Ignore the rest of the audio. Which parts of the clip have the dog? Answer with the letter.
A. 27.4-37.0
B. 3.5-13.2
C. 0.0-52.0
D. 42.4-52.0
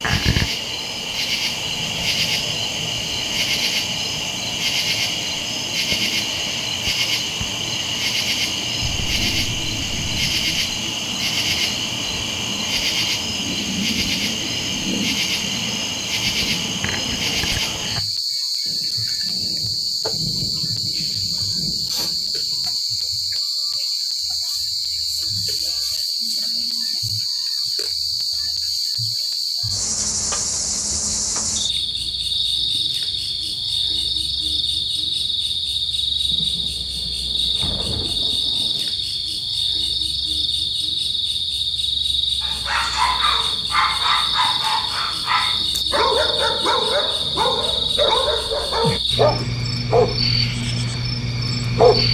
D.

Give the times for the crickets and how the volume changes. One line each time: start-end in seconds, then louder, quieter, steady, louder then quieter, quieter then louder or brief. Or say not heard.
0.0-52.0 steady.